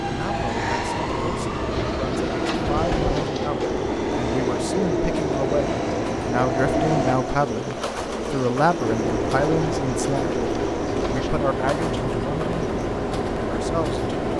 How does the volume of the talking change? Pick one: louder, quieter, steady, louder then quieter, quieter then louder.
louder then quieter.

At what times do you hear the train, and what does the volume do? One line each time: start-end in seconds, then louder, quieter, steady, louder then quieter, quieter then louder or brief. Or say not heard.
0.0-14.3 steady.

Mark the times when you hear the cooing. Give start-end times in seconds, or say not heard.
1.7-11.3.